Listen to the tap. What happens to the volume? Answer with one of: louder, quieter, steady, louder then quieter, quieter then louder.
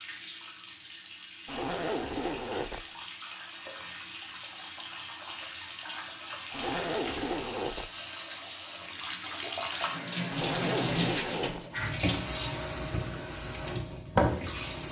louder.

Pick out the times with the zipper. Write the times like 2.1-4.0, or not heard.
1.4-2.9, 6.5-7.9, 10.3-11.7.